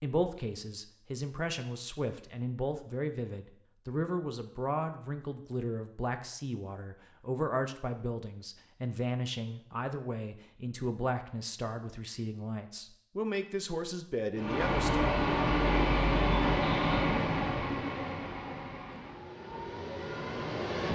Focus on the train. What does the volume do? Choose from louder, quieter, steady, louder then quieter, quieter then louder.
quieter.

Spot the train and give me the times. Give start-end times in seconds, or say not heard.
14.3-20.8.